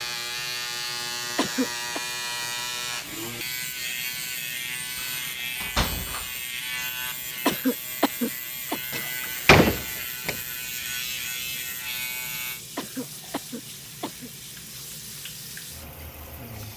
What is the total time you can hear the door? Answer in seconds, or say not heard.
3 s.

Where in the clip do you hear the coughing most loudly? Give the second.
8 s.